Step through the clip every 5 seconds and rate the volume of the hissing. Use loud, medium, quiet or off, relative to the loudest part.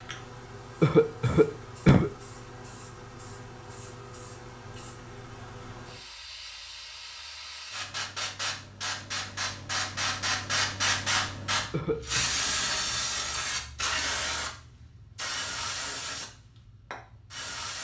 quiet, medium, loud, medium.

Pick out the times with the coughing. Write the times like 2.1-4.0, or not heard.
0.8-2.1, 11.7-12.3.